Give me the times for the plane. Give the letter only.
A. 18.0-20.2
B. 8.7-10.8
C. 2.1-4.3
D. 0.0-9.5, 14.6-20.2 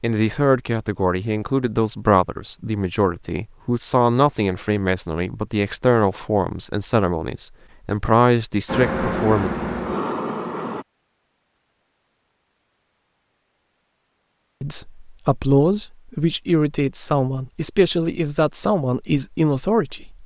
B.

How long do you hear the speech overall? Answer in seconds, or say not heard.
15 s.